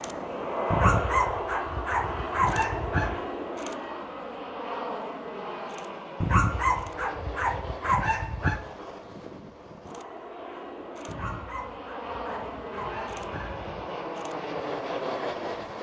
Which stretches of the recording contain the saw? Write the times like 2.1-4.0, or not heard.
not heard.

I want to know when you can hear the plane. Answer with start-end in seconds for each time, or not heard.
0.0-15.7.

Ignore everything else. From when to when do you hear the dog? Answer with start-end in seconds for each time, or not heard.
0.7-3.2, 6.2-8.6, 11.1-13.8.